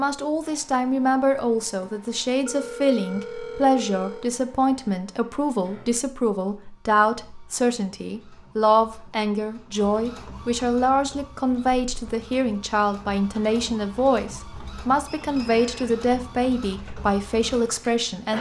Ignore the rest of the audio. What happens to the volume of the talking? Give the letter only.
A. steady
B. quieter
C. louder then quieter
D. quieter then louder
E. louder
A.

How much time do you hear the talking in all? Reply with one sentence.
You can hear the talking for 18 seconds altogether.